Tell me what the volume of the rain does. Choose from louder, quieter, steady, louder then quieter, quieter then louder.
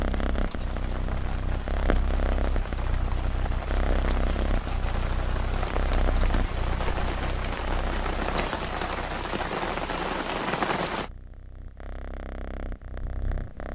louder.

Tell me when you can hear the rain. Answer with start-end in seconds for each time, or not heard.
0.0-11.1.